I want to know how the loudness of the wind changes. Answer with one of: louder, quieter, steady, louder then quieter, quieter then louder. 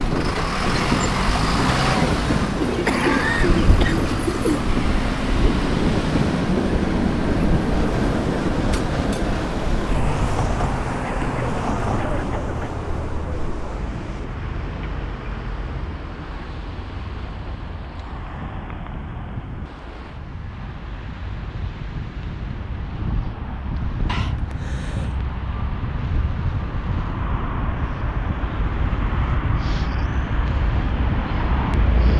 quieter then louder.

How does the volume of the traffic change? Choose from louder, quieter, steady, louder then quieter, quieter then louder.
quieter then louder.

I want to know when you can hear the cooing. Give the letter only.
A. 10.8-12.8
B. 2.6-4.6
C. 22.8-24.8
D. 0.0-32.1
B.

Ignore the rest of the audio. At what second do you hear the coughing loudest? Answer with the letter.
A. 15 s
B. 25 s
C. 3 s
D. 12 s
C.